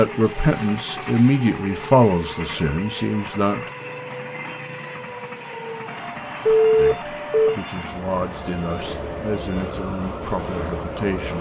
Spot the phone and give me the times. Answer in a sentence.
The phone can be heard from 6.5 to 7.5 s.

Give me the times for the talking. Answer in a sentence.
The talking can be heard from 0.0 to 3.7 s and from 6.8 to 11.3 s.